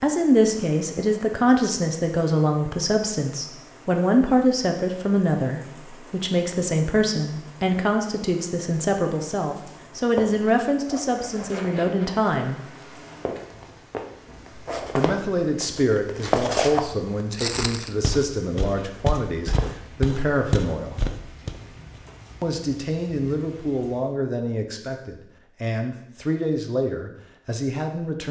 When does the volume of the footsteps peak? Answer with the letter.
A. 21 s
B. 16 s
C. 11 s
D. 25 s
B.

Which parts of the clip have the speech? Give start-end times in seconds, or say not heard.
0.0-12.6, 14.9-21.0, 22.4-28.2.